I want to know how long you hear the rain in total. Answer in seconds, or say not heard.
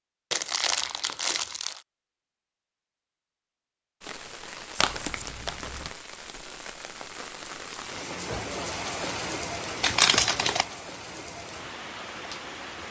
9 s.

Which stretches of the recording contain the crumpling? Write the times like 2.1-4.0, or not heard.
0.3-1.8, 4.8-5.9, 9.8-10.7.